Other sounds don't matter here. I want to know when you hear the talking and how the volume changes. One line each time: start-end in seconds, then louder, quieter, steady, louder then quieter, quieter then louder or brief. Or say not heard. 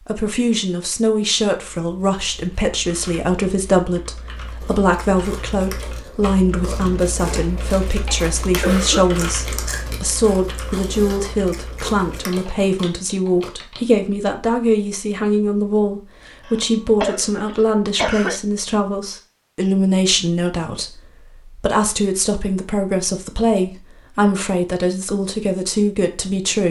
0.1-26.6 steady.